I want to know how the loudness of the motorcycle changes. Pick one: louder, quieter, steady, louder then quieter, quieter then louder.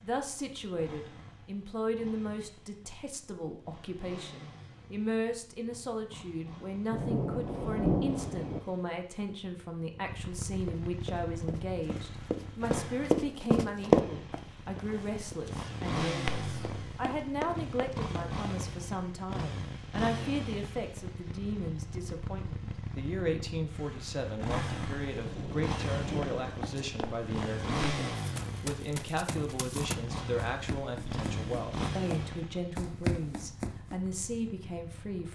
louder.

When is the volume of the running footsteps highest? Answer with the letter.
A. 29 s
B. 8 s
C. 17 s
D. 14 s
D.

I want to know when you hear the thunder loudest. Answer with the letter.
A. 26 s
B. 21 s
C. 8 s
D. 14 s
C.